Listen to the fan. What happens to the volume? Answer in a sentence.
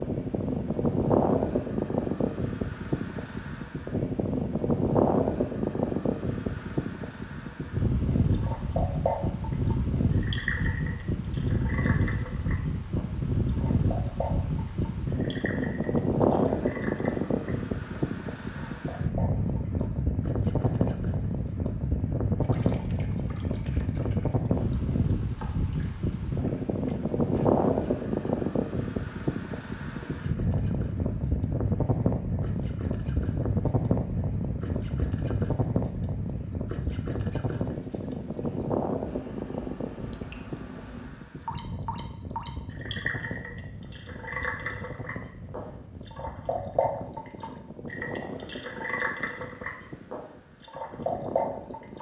The loudness of the fan goes down.